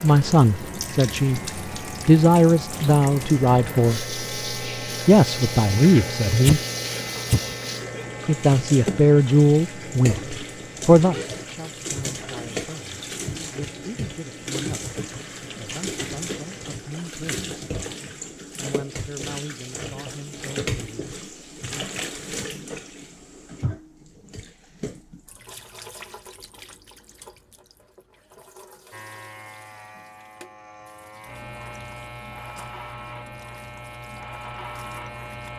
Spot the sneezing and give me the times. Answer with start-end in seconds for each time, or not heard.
6.2-8.1.